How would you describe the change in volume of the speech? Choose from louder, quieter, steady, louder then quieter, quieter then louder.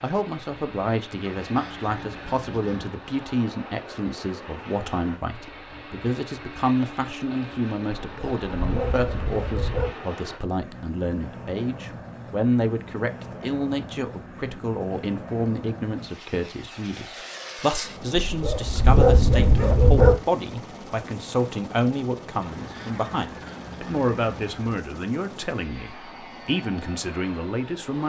steady.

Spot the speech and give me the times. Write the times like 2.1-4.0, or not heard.
0.0-28.0.